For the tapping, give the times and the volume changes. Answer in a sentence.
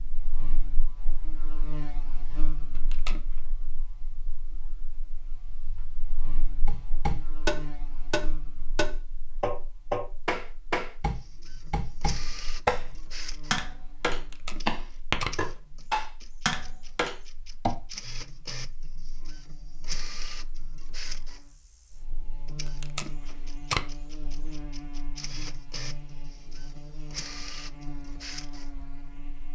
You can hear the tapping from 6.7 to 17.8 s, at a steady volume.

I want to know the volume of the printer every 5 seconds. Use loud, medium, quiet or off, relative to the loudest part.
off, off, loud, loud, loud, loud.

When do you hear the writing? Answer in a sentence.
You can't hear the writing here.